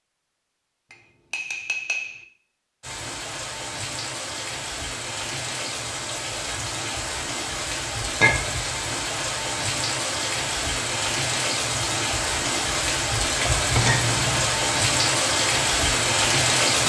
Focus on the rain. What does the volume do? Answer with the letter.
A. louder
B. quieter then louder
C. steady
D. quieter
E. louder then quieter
A.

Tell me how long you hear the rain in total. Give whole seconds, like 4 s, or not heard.
14 s.